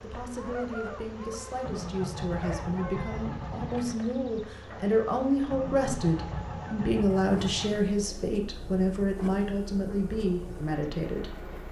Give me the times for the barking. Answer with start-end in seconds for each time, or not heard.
not heard.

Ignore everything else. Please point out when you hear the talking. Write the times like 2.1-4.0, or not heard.
0.0-11.5.